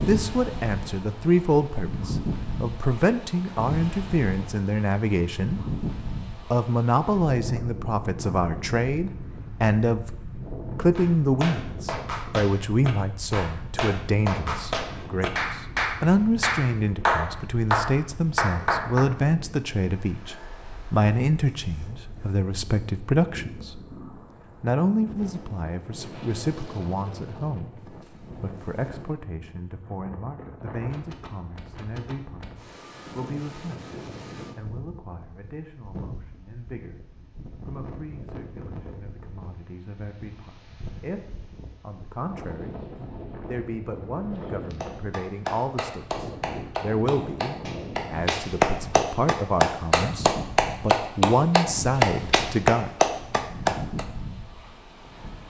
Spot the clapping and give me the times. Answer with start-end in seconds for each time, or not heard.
10.9-19.1, 44.8-54.0.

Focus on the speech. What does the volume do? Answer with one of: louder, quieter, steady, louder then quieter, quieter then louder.
quieter then louder.